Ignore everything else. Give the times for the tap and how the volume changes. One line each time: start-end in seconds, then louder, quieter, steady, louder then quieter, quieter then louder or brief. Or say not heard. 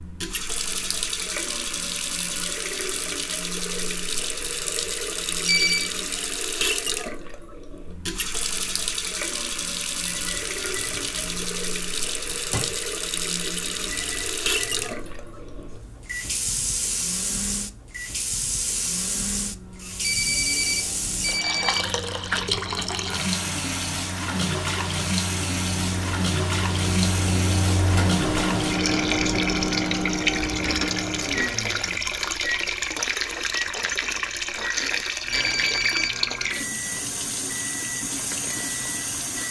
0.0-39.4 steady.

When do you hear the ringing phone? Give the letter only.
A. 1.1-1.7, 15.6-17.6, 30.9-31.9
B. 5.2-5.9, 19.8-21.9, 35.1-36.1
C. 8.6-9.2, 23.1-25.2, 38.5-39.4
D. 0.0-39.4
B.